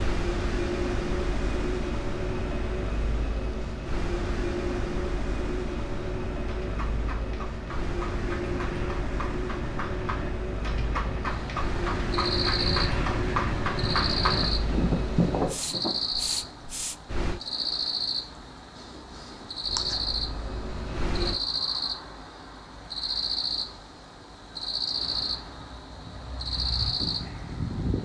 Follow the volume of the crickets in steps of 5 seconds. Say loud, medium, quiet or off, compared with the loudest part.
off, off, loud, loud, loud, loud.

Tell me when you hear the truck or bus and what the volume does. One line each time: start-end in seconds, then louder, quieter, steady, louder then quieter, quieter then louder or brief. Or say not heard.
0.0-17.4 steady
19.6-21.4 brief.